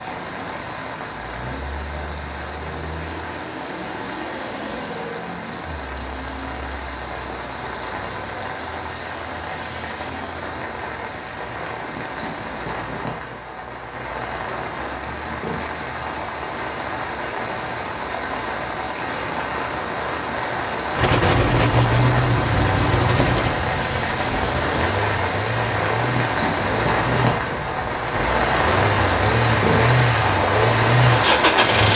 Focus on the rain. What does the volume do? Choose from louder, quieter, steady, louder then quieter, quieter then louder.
louder.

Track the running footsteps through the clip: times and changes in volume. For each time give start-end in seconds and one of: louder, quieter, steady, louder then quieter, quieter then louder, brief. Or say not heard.
not heard.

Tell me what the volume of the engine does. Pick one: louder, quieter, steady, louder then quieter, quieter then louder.
quieter then louder.